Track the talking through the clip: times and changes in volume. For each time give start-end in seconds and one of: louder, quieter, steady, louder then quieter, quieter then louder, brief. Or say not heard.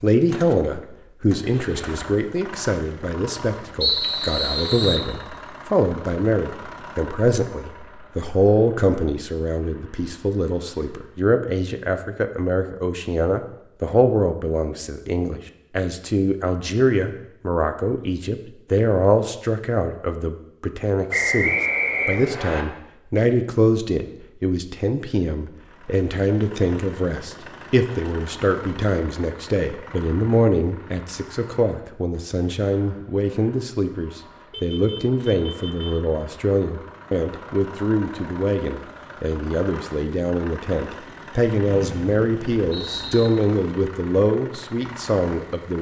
0.0-45.7 steady.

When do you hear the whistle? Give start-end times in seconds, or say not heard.
3.8-5.1, 21.1-22.6, 41.6-43.3.